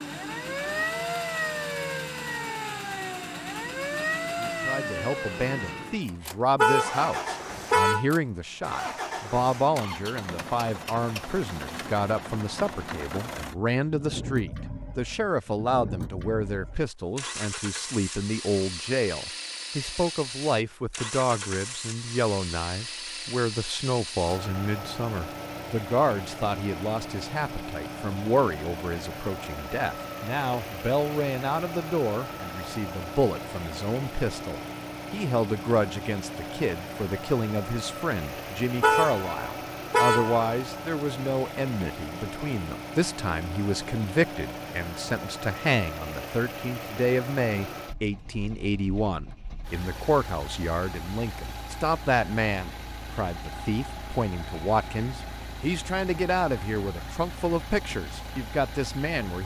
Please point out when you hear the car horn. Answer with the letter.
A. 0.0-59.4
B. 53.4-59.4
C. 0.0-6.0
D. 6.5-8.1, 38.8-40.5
D.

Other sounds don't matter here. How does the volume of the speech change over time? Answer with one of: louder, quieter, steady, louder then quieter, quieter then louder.
steady.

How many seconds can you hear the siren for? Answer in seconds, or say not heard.
6 s.